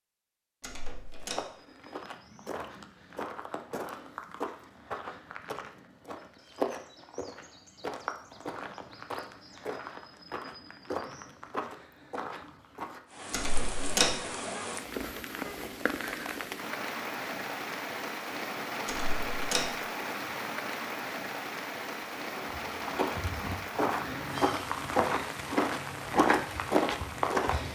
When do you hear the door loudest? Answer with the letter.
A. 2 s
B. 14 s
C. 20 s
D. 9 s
B.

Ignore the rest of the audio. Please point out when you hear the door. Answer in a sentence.
The door can be heard from 0.6 to 1.4 s, from 13.3 to 14.2 s and from 18.9 to 19.8 s.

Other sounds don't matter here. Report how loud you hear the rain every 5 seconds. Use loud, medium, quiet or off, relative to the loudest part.
off, off, loud, loud, loud, medium.